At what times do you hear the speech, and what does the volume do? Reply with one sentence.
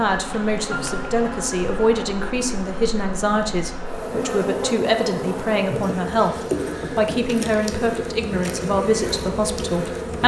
You can hear the speech from 0.0 to 10.2 s, at a steady volume.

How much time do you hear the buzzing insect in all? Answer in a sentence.
You can hear the buzzing insect for 10 seconds altogether.